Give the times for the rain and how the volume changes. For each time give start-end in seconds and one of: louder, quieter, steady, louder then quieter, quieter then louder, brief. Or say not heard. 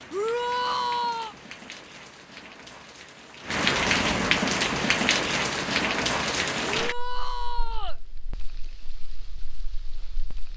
0.0-10.5 louder then quieter.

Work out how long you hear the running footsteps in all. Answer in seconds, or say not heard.
not heard.